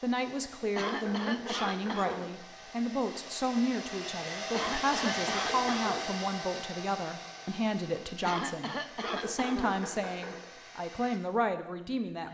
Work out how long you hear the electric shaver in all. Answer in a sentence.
You can't hear the electric shaver here.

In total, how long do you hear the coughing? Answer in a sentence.
The coughing can be heard for 5 seconds in total.